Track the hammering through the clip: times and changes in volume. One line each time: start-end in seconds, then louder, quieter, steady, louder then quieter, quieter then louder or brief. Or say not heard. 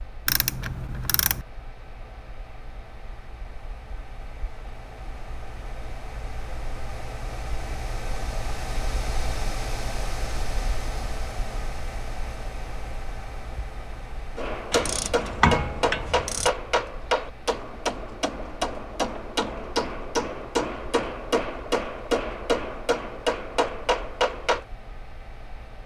14.3-24.6 steady.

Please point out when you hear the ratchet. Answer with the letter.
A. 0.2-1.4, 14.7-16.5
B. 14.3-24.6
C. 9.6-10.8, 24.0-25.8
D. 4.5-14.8
A.